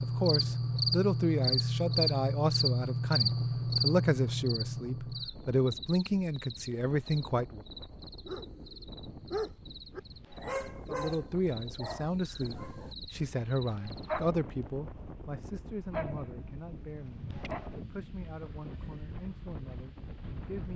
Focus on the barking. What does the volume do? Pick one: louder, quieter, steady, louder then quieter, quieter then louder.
quieter.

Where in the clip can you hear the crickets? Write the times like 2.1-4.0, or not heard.
0.0-14.3.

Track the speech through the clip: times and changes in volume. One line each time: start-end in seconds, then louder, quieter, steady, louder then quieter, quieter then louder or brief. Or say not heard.
0.0-7.6 steady
10.8-20.7 quieter.